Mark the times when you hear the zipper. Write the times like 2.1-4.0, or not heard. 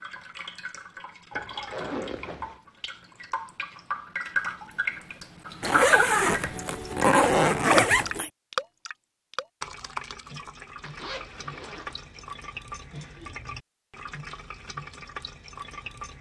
1.3-2.6, 5.6-8.3, 10.8-12.2.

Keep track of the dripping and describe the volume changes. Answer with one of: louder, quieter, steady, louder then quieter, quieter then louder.
louder then quieter.